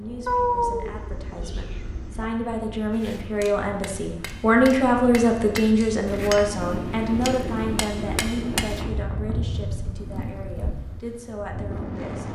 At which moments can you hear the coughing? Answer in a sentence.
The coughing can't be heard in this clip.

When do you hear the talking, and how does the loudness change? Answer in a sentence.
The talking can be heard from 0.0 to 12.2 s, getting louder then quieter.